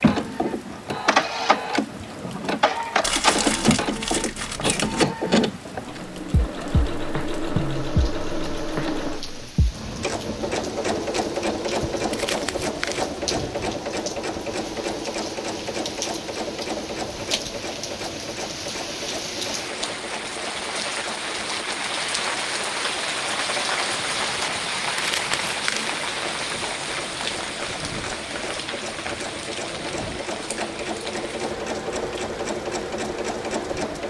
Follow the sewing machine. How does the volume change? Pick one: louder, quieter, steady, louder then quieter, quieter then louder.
quieter then louder.